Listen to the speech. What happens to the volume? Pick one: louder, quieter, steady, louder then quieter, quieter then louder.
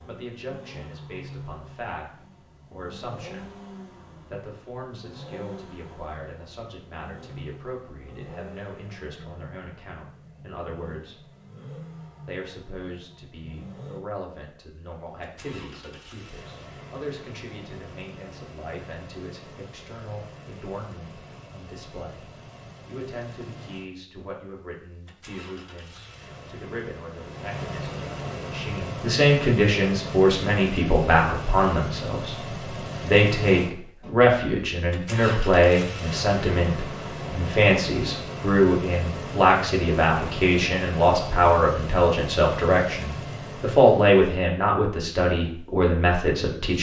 louder.